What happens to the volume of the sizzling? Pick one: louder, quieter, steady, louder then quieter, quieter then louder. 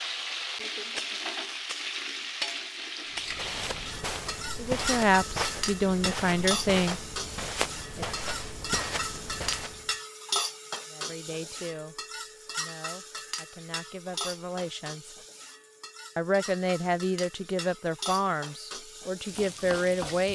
quieter.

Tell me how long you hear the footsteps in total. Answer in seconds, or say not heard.
7 s.